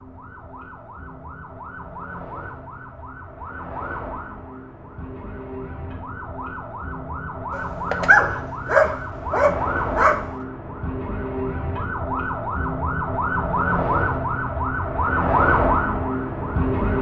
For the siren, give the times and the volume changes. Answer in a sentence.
The siren can be heard from 0.0 to 16.9 s, getting louder.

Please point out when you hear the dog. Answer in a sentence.
You can hear the dog from 7.5 to 10.2 s.